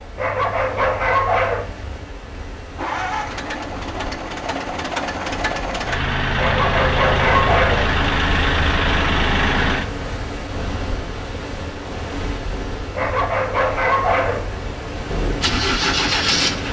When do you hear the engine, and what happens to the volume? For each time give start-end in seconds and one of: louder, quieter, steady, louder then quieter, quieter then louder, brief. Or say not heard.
2.8-9.9 louder
15.1-16.6 brief.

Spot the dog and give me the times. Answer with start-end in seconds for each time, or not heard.
0.1-1.7, 6.3-7.9, 12.9-14.5.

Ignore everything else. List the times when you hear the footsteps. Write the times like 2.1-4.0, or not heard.
not heard.